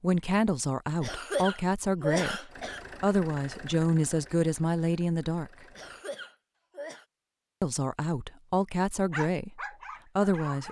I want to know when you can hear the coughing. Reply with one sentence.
The coughing can be heard from 1.0 to 2.8 s and from 5.7 to 7.0 s.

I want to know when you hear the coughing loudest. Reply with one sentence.
The loudest moment of the coughing is at 2 seconds.